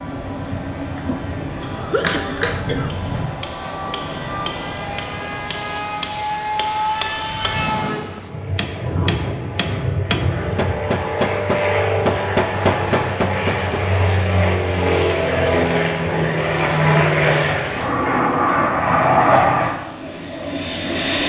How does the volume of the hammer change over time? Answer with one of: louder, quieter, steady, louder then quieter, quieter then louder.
louder.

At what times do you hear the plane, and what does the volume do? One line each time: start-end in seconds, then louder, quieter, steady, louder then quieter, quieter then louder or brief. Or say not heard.
0.0-21.2 louder.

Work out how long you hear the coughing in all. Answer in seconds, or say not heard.
2 s.